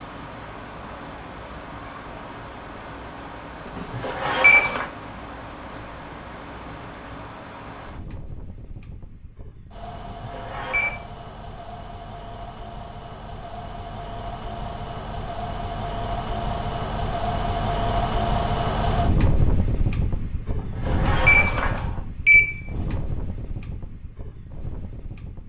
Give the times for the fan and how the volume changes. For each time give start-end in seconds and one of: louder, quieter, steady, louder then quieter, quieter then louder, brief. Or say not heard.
0.0-25.4 louder then quieter.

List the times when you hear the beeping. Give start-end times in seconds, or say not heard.
3.6-4.9, 9.9-11.0, 20.4-22.6.